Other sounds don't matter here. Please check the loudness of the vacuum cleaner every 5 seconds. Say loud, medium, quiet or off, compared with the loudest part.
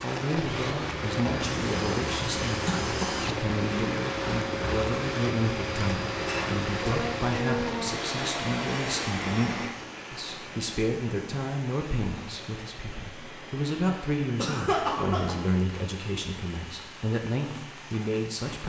loud, loud, quiet, quiet.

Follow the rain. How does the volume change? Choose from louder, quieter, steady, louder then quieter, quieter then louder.
quieter.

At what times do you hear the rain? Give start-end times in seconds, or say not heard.
0.0-18.6.